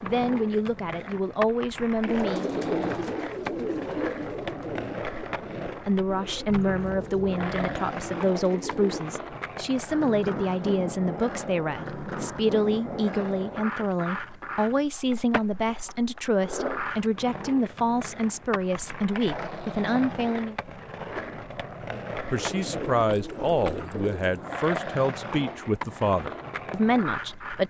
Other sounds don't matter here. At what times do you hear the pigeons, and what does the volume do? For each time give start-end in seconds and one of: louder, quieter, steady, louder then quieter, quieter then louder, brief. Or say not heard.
2.0-9.1 quieter
22.2-24.6 brief.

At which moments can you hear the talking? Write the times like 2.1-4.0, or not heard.
0.0-2.5, 5.8-20.6, 22.3-27.6.